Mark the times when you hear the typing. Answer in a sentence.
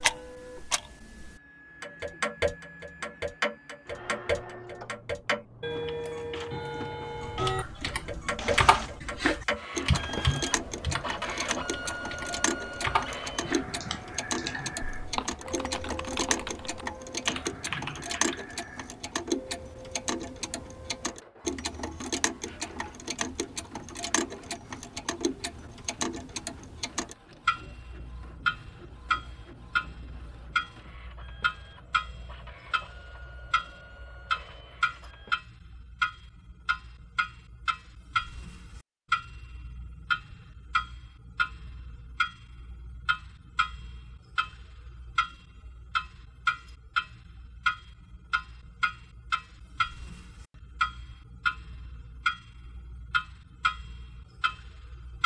You can hear the typing from 7.2 to 18.4 s.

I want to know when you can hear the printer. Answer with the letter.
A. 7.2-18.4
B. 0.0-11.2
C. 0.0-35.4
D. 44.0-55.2
C.